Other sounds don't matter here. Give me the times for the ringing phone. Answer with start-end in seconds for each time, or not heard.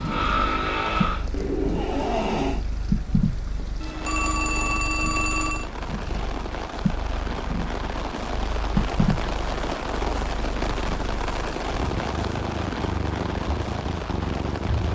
3.8-5.7.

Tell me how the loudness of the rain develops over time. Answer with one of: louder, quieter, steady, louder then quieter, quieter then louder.
louder.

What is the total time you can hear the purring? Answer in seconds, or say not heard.
15 s.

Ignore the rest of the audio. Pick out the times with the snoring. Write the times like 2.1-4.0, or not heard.
0.0-2.6.